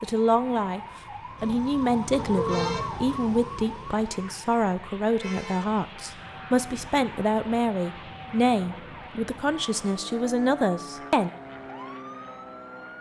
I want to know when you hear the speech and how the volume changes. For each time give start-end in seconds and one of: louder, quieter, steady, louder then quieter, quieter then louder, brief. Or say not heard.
0.0-11.3 steady.